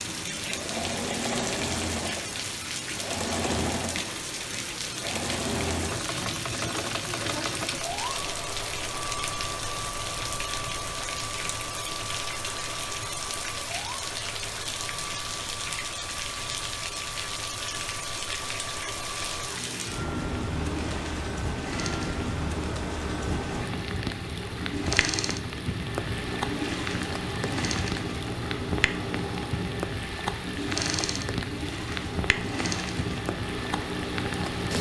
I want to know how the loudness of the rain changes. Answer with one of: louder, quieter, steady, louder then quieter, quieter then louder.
steady.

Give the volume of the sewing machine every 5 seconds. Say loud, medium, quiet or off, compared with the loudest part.
loud, loud, medium, medium, loud, loud, loud.